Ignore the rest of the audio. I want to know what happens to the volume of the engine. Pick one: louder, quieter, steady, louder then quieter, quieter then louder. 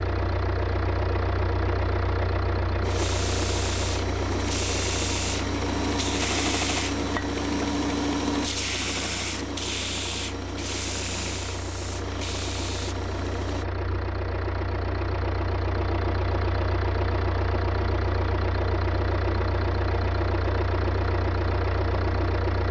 quieter then louder.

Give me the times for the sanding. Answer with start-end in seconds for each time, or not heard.
2.8-13.7.